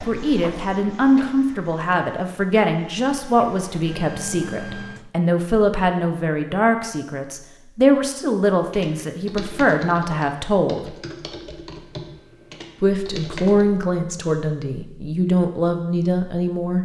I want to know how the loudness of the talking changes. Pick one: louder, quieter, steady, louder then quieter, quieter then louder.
steady.